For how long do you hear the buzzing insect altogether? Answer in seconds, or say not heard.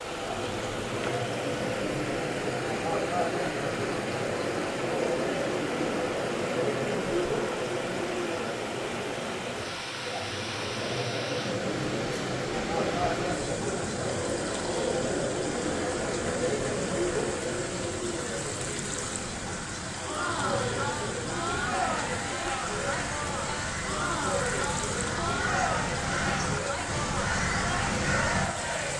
not heard.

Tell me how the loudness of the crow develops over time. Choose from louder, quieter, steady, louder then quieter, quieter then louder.
louder.